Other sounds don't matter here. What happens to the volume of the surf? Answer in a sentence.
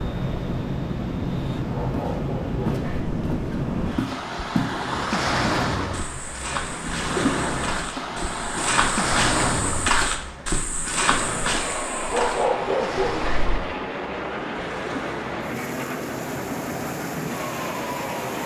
The volume of the surf goes down.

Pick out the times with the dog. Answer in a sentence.
The dog can be heard from 1.7 to 3.1 s and from 12.1 to 13.6 s.